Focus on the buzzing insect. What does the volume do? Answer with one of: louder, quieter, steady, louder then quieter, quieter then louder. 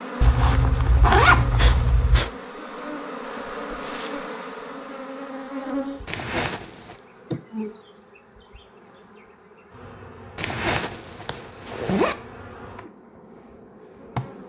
quieter.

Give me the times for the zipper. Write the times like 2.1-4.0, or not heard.
0.2-2.2, 6.0-7.0, 10.3-12.2.